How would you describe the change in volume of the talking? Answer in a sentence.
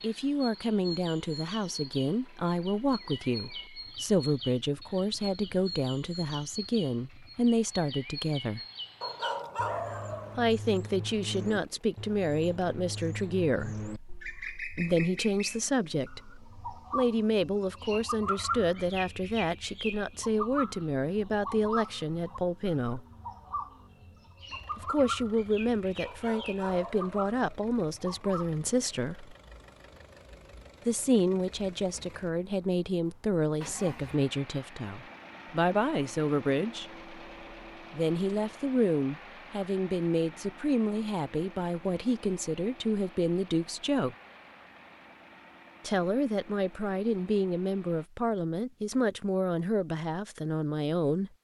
The loudness of the talking stays about the same.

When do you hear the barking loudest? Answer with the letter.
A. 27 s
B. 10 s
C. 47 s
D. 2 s
B.